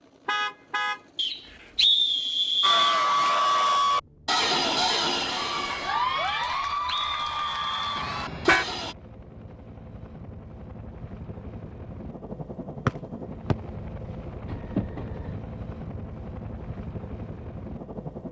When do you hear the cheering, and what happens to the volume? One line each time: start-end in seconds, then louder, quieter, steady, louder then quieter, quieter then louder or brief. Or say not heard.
2.6-8.9 quieter.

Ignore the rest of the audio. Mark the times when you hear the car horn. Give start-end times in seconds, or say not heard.
0.2-1.0, 8.0-8.7, 14.4-15.4.